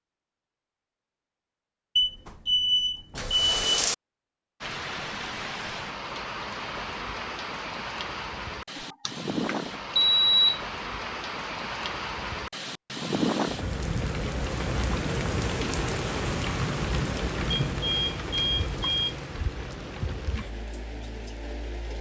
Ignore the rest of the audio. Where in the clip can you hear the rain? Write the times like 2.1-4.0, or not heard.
4.6-21.9.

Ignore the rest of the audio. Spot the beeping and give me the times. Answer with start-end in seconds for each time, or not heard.
1.9-4.0, 8.8-10.6, 17.5-19.1.